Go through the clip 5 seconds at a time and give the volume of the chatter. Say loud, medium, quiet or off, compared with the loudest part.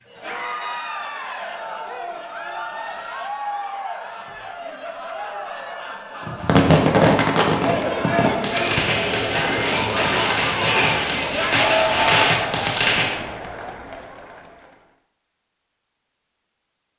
medium, loud, loud, off.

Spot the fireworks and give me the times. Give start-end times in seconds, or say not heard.
6.2-13.2.